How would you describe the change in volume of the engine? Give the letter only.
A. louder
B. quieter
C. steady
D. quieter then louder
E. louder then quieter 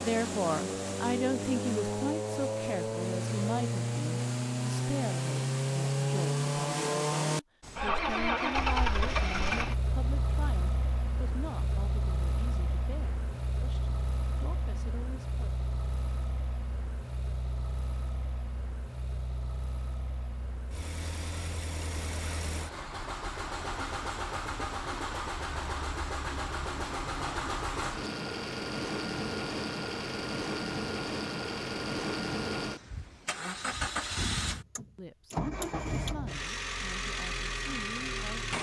D.